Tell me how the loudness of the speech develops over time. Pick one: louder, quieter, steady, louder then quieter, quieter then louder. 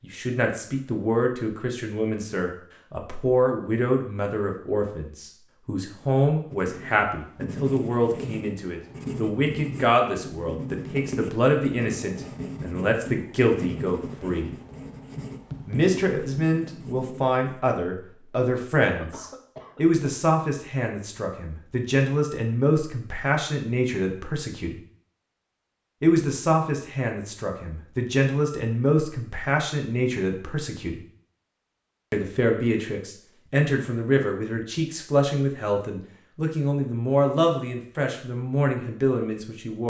steady.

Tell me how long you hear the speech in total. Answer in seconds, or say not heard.
36 s.